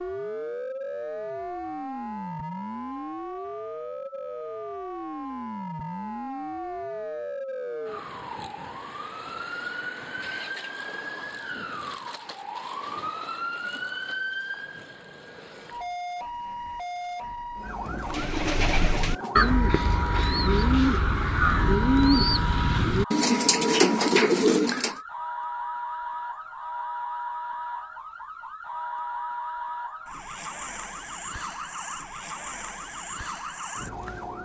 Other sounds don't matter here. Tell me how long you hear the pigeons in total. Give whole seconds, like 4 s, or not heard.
7 s.